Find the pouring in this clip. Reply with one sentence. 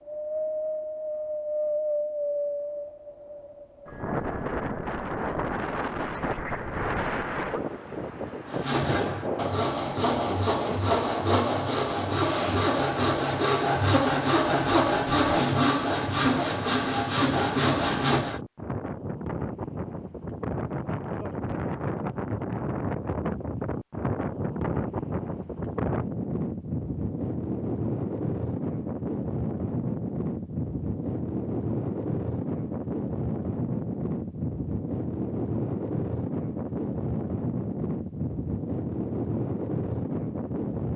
The pouring can't be heard in this clip.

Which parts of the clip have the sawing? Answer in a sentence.
You can hear the sawing from 8.4 to 18.4 s.